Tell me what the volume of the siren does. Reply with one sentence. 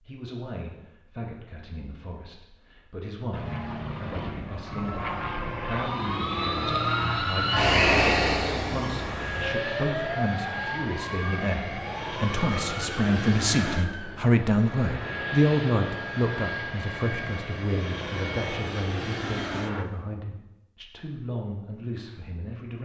The volume of the siren goes up, then down.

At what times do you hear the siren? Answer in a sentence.
The siren can be heard from 4.8 to 14.2 s.